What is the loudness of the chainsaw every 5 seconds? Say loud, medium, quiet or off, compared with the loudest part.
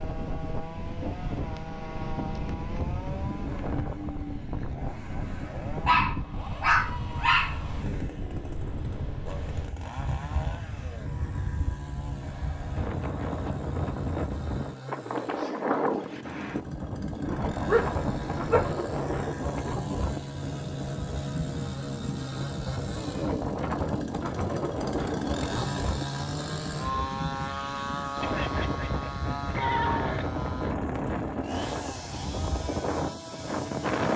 medium, medium, medium, medium, loud, loud, medium.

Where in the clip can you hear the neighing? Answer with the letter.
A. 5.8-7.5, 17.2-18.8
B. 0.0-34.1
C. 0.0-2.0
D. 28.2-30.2
D.